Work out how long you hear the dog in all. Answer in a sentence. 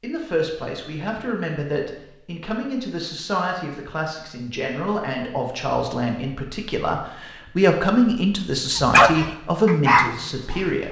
You can hear the dog for 2 seconds altogether.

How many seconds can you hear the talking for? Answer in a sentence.
You can hear the talking for 11 seconds altogether.